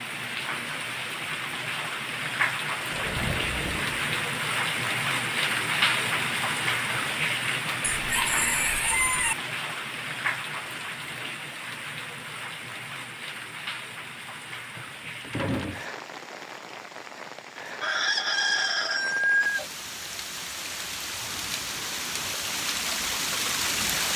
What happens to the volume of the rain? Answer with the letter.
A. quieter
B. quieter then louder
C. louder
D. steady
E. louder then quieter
B.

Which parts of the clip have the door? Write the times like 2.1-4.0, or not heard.
2.9-4.3, 14.8-15.8.